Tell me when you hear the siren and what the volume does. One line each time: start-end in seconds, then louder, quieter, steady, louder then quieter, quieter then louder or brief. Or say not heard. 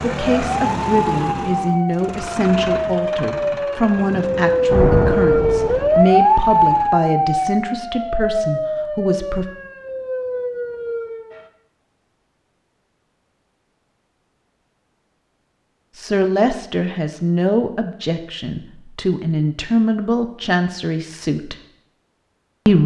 0.2-11.4 louder then quieter.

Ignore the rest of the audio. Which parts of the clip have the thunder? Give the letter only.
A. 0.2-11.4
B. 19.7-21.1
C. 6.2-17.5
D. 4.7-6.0
D.